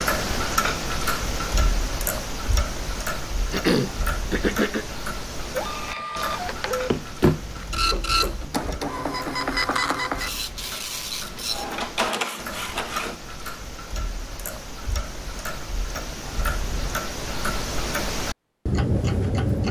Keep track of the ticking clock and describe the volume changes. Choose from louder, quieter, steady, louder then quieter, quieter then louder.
quieter then louder.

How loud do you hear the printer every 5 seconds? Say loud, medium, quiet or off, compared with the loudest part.
off, loud, loud, off.